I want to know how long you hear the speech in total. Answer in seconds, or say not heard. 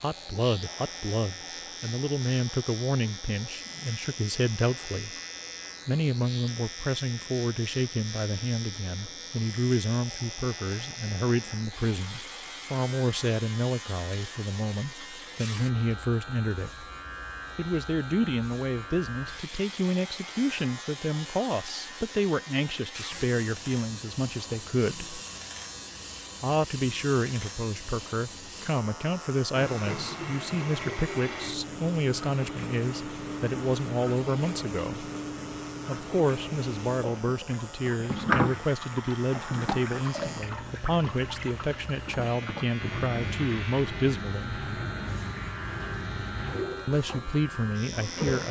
43 s.